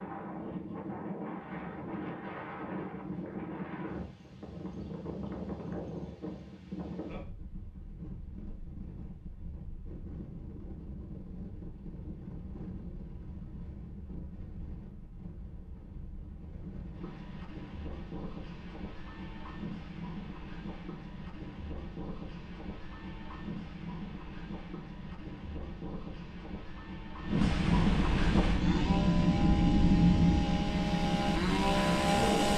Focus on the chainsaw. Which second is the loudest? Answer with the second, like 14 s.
32 s.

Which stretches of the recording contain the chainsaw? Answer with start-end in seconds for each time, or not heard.
28.4-32.5.